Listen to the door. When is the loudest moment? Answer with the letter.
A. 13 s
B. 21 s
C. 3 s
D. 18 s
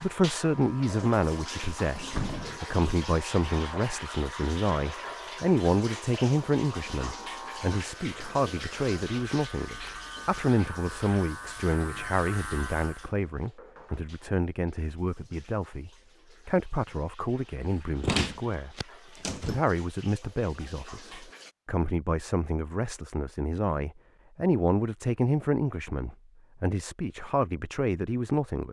D.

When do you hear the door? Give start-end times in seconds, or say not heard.
1.9-2.6, 18.0-19.6.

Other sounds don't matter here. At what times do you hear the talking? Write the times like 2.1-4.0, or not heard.
0.0-18.8, 19.4-28.6.